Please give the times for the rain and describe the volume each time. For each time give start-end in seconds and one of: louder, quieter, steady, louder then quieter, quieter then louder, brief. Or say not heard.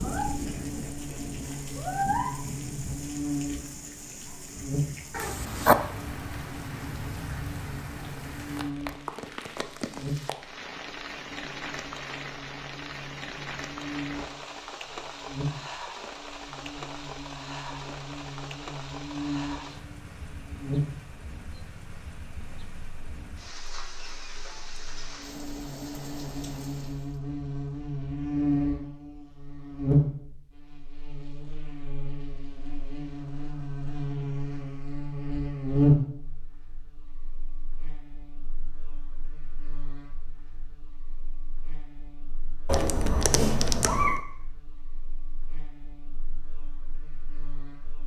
0.0-27.2 quieter.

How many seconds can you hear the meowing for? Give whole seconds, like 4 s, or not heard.
2 s.